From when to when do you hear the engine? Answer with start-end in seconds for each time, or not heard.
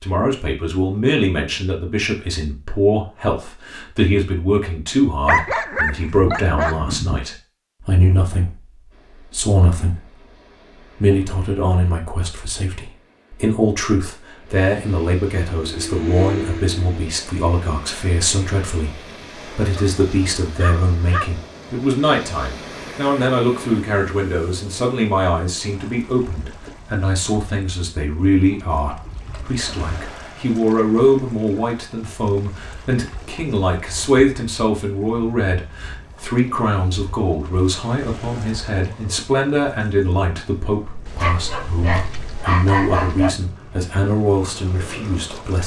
15.4-17.1.